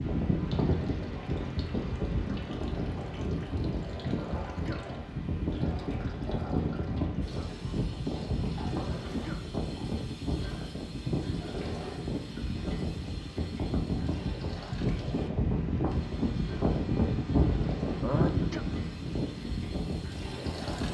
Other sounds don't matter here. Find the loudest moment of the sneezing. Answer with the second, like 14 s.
18 s.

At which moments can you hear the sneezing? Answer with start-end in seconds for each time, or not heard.
4.2-4.9, 8.7-9.5, 18.0-18.6.